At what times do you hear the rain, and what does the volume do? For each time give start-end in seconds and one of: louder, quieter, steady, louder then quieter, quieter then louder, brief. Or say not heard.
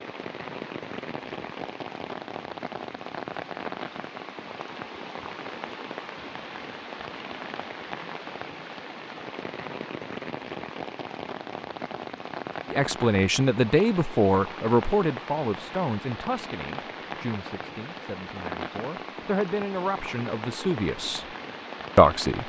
0.0-22.4 steady.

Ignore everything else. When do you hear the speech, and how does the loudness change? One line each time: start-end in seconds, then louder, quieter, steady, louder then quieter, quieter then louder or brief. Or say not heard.
12.7-21.2 quieter then louder
21.9-22.4 brief.